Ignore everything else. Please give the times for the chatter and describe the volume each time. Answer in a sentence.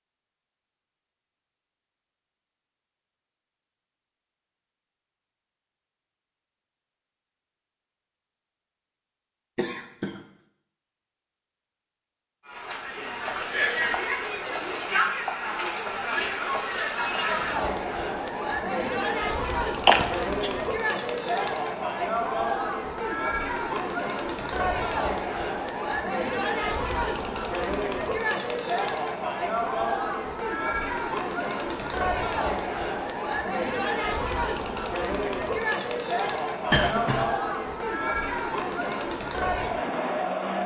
You can hear the chatter from 12.4 to 40.6 s, at a steady volume.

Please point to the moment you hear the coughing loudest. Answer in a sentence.
The loudest moment of the coughing is at 20 seconds.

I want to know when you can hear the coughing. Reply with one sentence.
You can hear the coughing from 9.6 to 10.2 s, from 19.9 to 20.5 s and from 36.7 to 37.3 s.